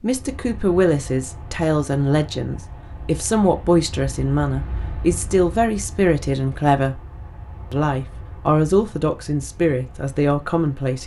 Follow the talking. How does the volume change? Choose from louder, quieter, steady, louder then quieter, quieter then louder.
steady.